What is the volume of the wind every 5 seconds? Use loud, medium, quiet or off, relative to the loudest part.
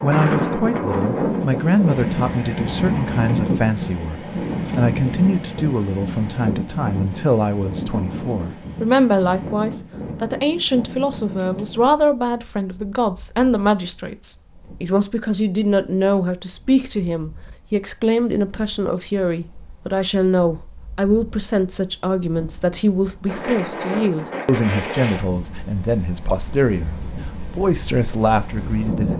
loud, medium, quiet, quiet, medium, medium.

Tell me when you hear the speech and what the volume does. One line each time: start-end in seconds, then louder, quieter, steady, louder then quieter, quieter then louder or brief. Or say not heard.
0.0-29.1 steady.